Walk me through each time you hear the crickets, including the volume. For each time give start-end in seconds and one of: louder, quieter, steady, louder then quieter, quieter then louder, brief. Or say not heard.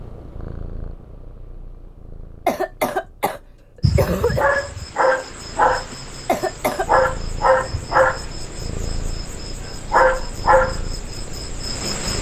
3.8-12.1 steady.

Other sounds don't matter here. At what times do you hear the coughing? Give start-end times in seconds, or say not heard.
2.5-4.5, 6.2-6.9.